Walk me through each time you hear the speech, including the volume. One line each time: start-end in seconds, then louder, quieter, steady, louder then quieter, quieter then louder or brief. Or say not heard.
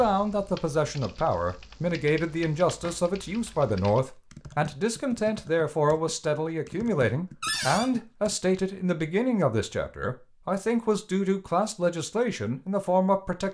0.0-13.4 steady.